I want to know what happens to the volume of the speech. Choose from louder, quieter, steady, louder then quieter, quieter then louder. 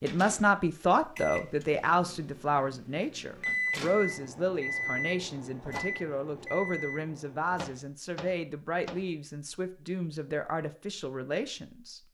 quieter.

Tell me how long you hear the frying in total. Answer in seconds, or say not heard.
not heard.